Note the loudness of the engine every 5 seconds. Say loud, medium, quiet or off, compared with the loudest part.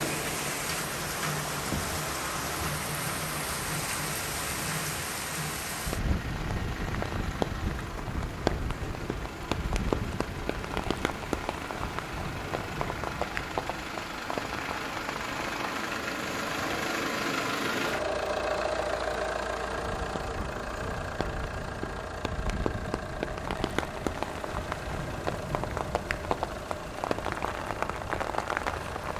medium, medium, medium, loud, medium, medium.